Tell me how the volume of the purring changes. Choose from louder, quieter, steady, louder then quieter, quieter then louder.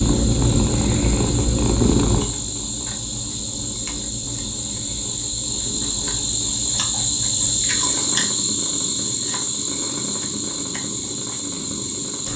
quieter.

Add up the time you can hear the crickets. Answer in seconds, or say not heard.
12 s.